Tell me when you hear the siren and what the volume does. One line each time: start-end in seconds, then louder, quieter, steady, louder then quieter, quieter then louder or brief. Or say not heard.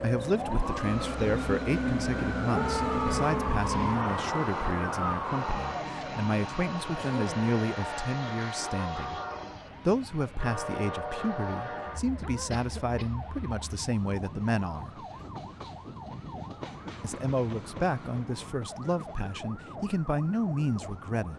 0.0-21.3 quieter.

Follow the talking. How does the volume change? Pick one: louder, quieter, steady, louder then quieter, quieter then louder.
steady.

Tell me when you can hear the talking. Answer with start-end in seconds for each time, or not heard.
0.0-9.2, 9.8-15.0, 17.0-21.3.